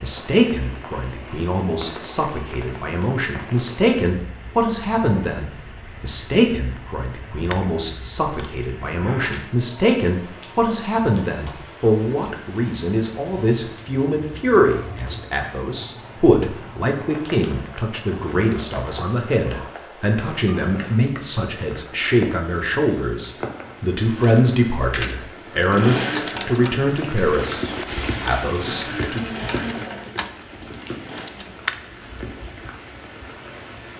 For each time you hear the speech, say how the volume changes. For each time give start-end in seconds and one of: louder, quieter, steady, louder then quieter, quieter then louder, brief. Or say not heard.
0.0-29.3 steady.